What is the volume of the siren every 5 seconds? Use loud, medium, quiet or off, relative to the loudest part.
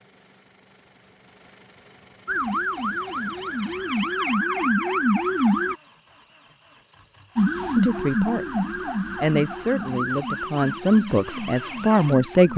loud, loud, medium.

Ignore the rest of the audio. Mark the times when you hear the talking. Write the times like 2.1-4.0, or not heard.
7.8-12.5.